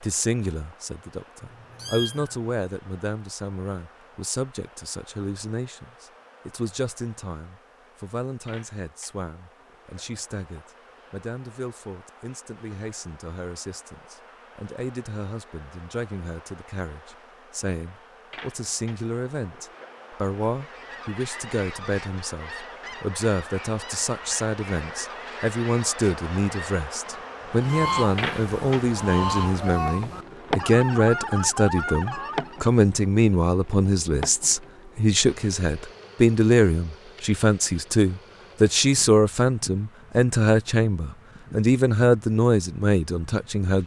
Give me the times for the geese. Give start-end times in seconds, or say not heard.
20.6-32.6.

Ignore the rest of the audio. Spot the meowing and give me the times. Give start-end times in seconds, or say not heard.
1.4-2.5.